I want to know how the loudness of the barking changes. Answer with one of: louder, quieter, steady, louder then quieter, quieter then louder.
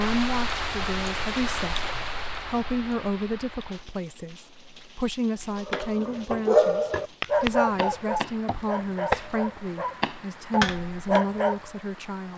quieter then louder.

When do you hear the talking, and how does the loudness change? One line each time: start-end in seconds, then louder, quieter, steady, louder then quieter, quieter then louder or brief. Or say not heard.
0.0-12.3 steady.